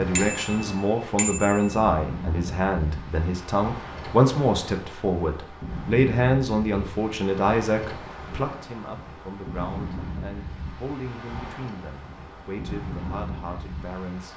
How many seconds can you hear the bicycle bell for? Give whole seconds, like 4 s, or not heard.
2 s.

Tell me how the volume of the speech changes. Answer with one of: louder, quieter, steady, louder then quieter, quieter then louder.
quieter.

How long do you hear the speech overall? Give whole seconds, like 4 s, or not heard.
14 s.